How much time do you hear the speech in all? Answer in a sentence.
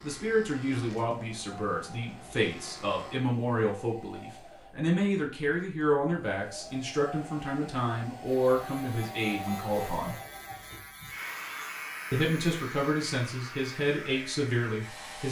You can hear the speech for 13 seconds altogether.